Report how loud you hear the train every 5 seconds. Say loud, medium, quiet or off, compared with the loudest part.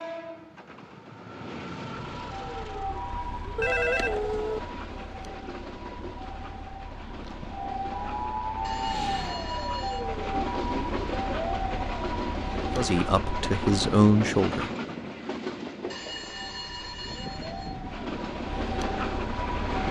medium, medium, loud, loud.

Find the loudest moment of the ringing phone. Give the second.
4 s.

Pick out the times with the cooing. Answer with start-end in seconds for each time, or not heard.
not heard.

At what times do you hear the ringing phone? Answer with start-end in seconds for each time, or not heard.
3.5-4.6, 8.6-10.1, 15.9-17.8.